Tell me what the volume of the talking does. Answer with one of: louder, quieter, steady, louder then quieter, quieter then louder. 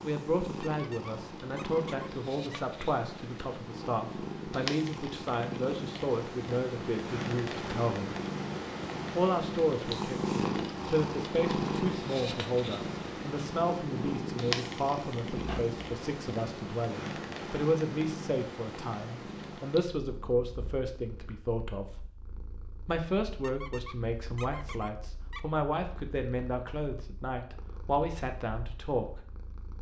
steady.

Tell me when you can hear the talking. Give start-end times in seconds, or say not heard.
0.0-8.2, 9.1-22.1, 22.9-29.1.